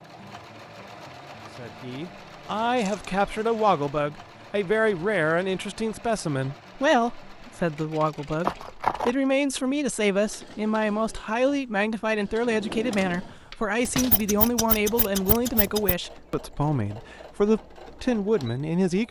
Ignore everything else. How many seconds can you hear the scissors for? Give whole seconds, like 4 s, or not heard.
4 s.